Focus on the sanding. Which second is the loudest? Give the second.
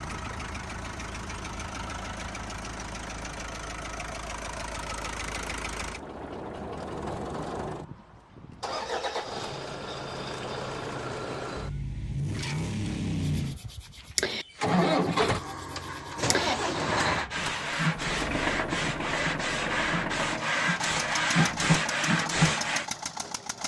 22 s.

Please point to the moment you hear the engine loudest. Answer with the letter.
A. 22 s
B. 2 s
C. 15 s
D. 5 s
C.